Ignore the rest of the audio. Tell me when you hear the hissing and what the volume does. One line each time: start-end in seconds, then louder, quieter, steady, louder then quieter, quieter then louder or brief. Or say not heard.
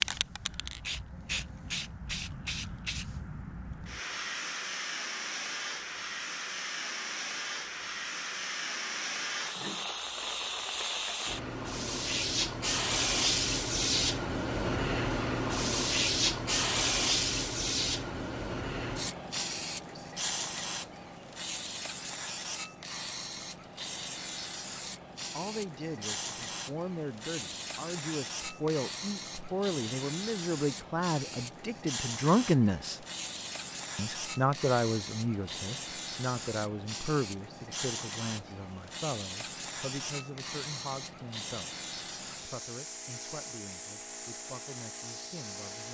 0.0-45.9 louder then quieter.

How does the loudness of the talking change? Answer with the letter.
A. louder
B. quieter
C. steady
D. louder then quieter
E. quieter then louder
D.